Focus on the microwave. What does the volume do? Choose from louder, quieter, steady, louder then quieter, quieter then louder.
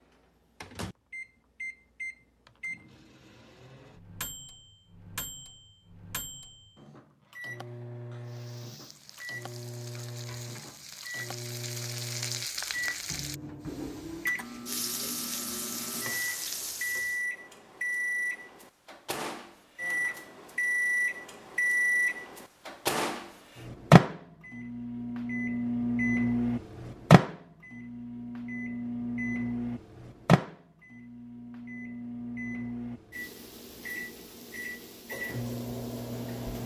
louder then quieter.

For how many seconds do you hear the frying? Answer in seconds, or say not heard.
9 s.